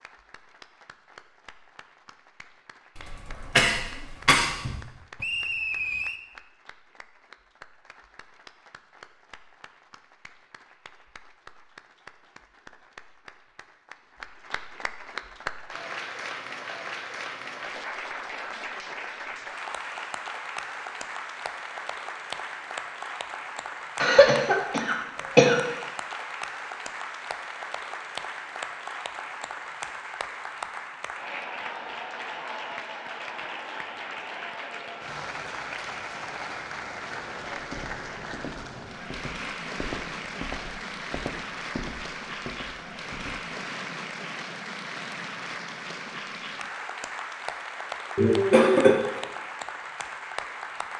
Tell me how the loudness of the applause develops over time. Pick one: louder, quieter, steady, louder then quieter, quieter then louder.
louder.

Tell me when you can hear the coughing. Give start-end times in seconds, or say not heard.
3.0-4.8, 24.0-25.6, 48.1-49.0.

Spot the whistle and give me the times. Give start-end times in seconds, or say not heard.
5.2-6.2.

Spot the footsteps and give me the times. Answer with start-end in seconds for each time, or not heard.
37.5-43.4.